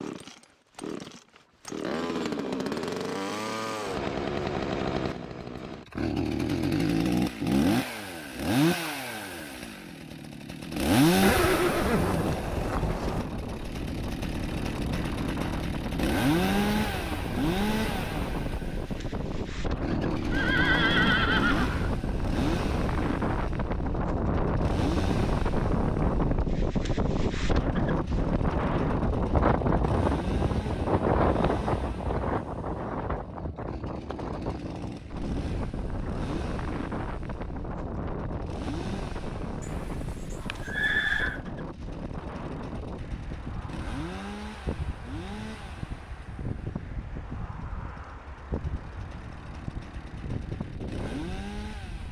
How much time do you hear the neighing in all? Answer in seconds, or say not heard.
6 s.